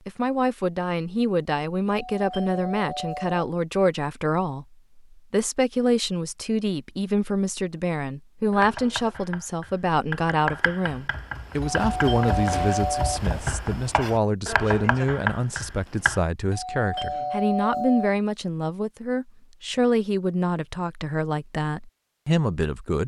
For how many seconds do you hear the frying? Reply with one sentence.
The frying can't be heard in this clip.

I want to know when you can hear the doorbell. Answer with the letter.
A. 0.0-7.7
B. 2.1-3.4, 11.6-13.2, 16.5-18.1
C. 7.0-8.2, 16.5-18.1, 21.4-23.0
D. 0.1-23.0
B.